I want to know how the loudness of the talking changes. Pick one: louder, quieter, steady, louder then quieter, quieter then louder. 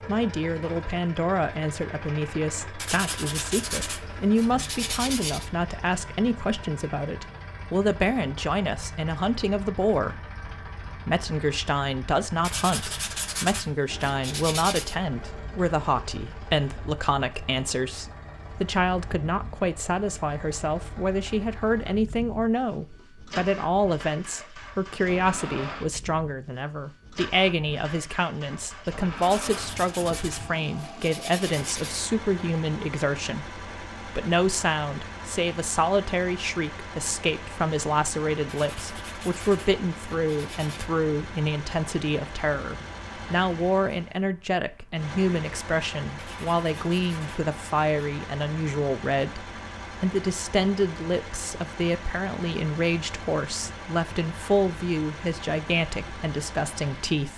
steady.